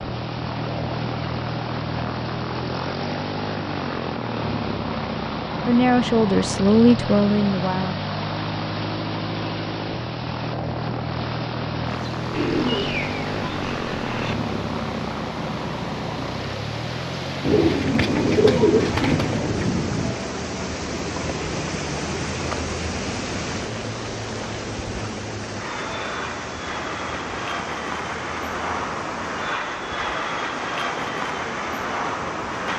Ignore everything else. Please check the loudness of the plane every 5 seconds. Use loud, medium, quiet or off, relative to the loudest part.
loud, loud, loud, loud, medium, loud, loud.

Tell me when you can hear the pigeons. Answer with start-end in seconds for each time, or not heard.
12.3-14.3, 17.4-20.1.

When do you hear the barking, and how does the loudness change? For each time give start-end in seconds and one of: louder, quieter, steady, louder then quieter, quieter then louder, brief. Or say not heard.
not heard.